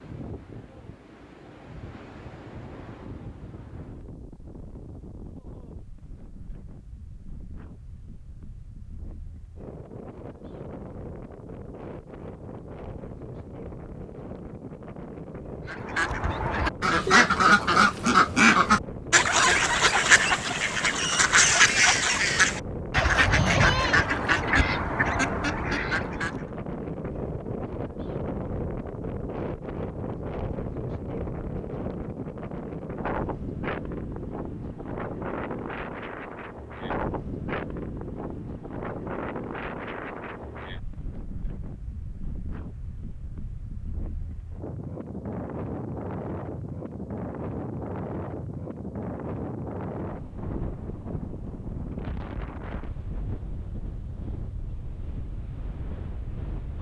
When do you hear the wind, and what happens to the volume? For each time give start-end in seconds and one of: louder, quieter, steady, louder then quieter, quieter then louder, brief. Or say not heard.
0.0-56.7 louder.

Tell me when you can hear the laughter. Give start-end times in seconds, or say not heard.
not heard.